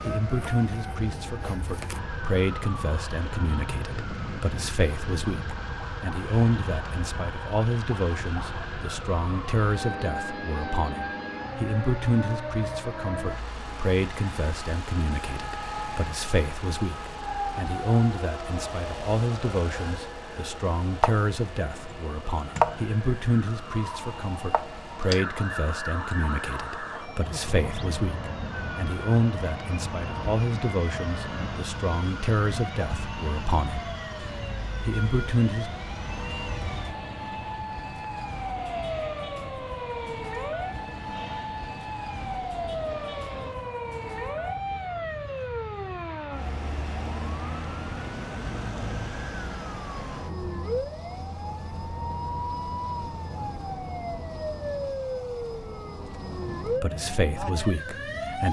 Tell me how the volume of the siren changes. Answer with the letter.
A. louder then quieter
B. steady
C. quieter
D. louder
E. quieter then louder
B.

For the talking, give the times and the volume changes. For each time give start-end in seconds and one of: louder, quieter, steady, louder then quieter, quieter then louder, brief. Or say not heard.
0.0-33.9 steady
34.8-35.8 brief
56.7-58.4 brief.